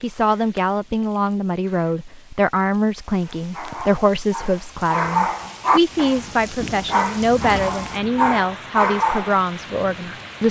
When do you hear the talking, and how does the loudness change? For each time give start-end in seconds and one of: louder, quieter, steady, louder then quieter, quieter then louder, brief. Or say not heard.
0.0-10.4 steady.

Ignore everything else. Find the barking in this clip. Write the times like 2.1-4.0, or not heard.
3.2-9.4.